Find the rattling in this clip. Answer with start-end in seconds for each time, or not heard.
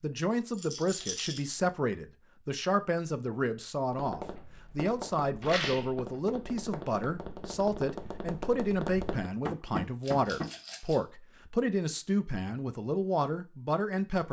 0.5-1.4, 5.4-5.9, 10.0-11.0.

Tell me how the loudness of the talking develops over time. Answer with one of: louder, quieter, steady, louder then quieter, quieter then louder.
steady.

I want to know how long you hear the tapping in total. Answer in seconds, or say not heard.
7 s.